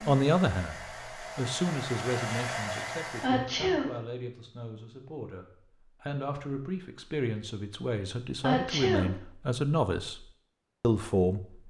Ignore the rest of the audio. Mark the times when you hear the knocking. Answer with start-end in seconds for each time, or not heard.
not heard.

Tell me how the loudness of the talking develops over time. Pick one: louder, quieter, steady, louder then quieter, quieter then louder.
quieter then louder.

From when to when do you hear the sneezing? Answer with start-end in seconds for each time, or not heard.
3.2-3.9, 8.4-9.1.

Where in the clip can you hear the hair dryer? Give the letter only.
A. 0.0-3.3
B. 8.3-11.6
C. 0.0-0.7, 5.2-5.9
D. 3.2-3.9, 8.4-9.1
A.